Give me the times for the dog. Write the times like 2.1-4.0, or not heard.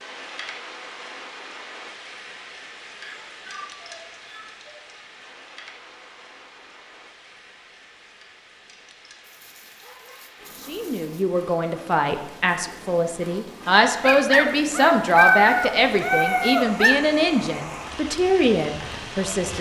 3.0-4.5, 9.2-11.2, 14.0-17.0.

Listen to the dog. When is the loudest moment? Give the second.
15 s.